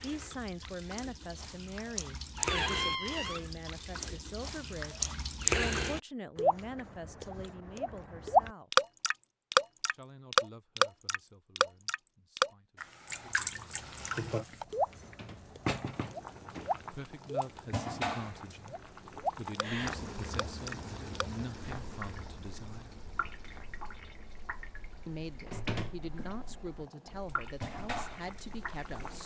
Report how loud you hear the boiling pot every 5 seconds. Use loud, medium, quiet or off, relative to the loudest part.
off, off, loud, loud, medium, medium.